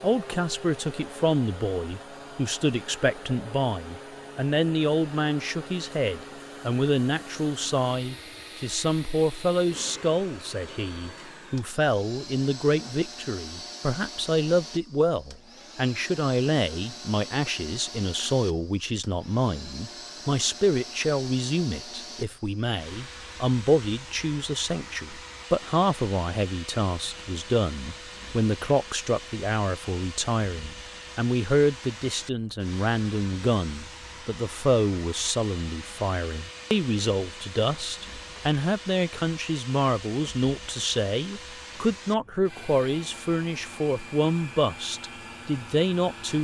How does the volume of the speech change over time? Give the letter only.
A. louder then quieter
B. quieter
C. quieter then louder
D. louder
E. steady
E.